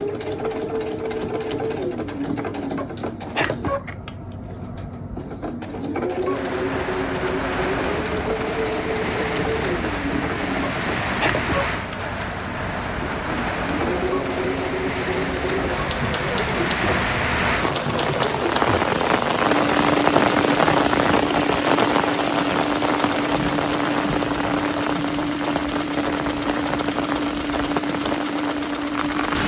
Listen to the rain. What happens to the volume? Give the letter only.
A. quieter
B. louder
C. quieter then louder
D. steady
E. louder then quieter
E.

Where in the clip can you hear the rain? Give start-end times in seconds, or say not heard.
6.2-29.4.